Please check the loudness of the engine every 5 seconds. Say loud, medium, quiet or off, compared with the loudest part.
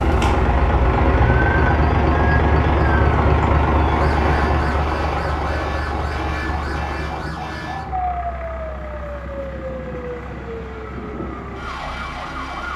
loud, medium, quiet.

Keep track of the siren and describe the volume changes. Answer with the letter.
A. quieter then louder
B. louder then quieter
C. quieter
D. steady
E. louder
D.